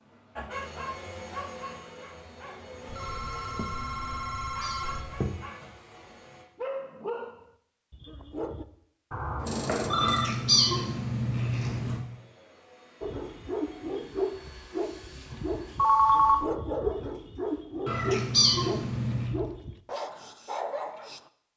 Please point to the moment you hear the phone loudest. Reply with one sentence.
The volume of the phone peaks at 16 seconds.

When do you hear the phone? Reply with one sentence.
The phone can be heard from 2.9 to 5.3 s, from 9.1 to 10.3 s and from 15.8 to 16.4 s.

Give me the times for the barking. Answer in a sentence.
You can hear the barking from 0.3 to 8.7 s and from 13.0 to 21.2 s.